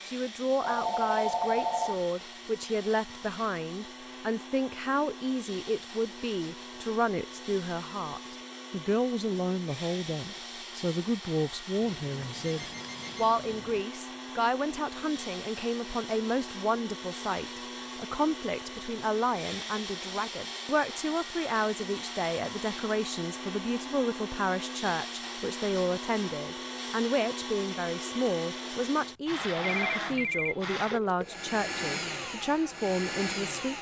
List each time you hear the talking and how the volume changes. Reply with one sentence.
The talking can be heard from 0.1 to 33.7 s, at a steady volume.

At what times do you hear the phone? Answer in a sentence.
The phone can be heard from 0.6 to 2.0 s, from 11.8 to 13.8 s and from 29.6 to 30.8 s.